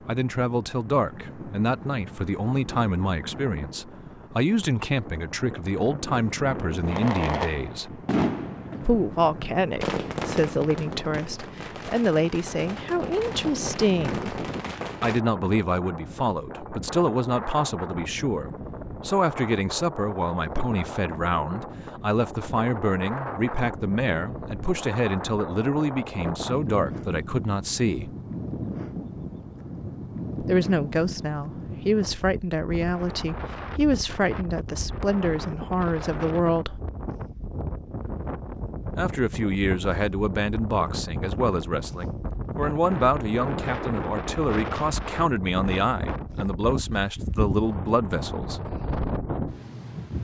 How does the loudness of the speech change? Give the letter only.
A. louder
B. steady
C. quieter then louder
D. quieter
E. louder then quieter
B.